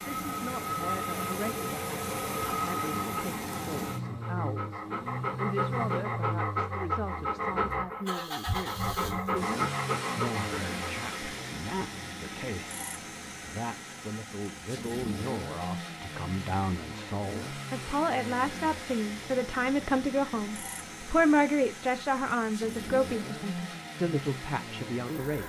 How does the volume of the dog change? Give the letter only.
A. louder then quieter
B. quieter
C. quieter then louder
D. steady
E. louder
E.